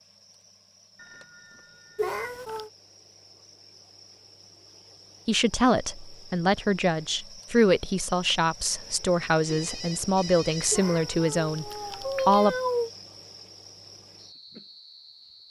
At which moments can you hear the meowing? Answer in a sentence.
The meowing can be heard from 1.9 to 2.7 s and from 10.7 to 12.9 s.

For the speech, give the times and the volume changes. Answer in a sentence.
You can hear the speech from 5.2 to 12.6 s, at a steady volume.